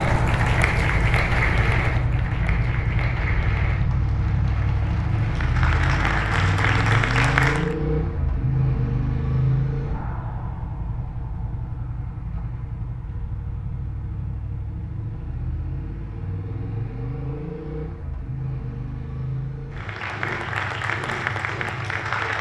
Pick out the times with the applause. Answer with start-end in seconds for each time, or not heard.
0.0-7.8, 19.7-22.3.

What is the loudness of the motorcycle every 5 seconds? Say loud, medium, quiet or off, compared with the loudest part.
loud, loud, medium, medium, medium.